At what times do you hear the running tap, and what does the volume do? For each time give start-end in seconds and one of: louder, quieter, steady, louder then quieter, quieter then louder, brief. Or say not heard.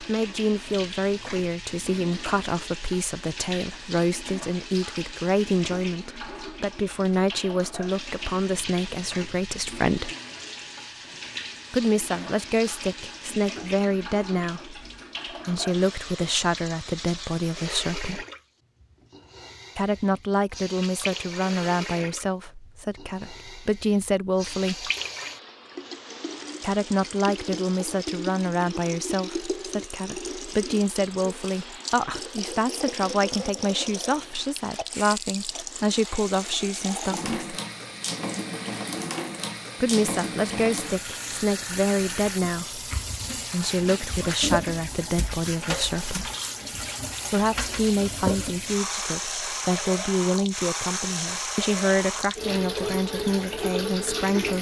0.0-54.5 louder.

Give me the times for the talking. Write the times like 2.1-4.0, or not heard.
0.0-10.1, 11.7-18.2, 19.8-24.9, 26.6-37.5, 39.8-46.3, 47.3-54.5.